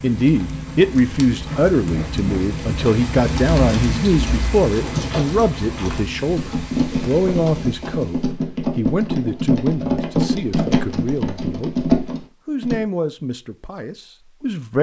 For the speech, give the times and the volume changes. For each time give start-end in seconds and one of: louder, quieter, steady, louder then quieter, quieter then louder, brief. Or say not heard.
0.0-11.8 quieter
12.4-14.7 brief.